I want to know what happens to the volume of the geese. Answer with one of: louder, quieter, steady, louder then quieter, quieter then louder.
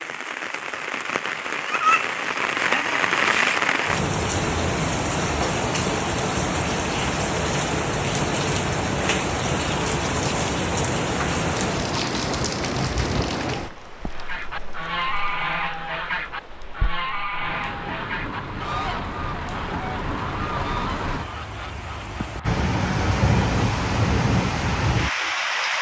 quieter.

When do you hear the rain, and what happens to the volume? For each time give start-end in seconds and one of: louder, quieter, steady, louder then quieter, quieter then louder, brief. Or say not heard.
0.0-25.7 quieter then louder.